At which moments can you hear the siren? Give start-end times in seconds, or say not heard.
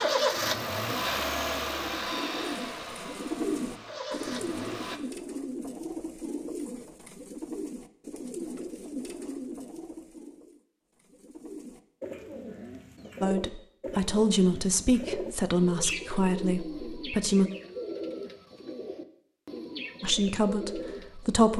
not heard.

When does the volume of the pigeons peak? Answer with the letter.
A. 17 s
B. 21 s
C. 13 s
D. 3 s
D.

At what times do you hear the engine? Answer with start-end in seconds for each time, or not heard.
0.0-5.0.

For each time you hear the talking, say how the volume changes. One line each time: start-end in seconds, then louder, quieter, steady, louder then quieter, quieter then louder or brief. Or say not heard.
13.2-17.5 quieter
20.0-21.5 brief.